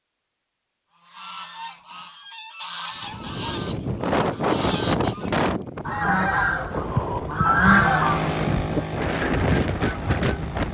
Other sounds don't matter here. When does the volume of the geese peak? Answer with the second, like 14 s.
8 s.